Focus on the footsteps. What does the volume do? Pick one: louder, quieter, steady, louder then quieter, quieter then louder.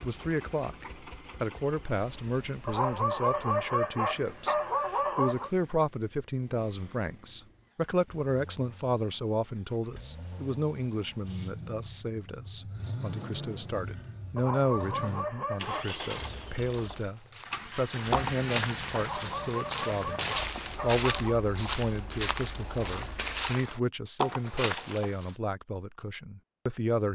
steady.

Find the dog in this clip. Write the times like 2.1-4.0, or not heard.
2.6-5.5, 14.3-15.9, 18.9-21.4.